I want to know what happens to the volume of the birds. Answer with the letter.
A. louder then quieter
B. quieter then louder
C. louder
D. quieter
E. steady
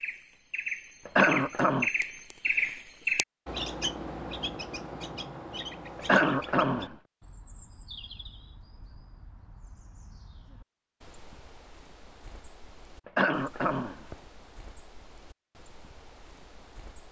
D.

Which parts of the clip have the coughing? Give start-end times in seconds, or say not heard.
1.1-1.9, 6.0-7.0, 13.1-14.2.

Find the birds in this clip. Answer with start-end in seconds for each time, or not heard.
0.0-17.0.